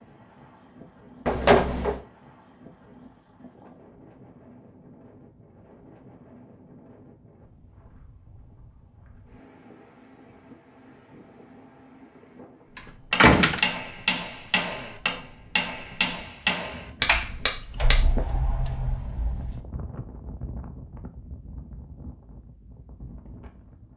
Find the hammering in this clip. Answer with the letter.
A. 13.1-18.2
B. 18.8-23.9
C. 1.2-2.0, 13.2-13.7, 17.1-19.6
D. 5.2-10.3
A.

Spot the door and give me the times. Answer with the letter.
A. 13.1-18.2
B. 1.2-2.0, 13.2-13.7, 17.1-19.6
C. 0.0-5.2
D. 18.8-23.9
B.